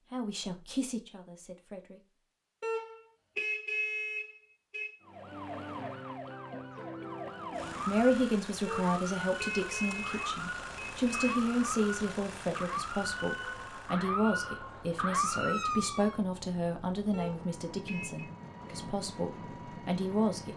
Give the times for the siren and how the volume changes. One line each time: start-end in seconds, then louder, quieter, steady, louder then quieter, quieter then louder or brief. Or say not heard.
5.0-16.2 louder.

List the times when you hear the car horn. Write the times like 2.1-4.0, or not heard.
2.6-5.0, 8.7-11.3, 17.1-18.3.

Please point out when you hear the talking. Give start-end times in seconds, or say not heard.
0.0-2.0, 7.8-20.5.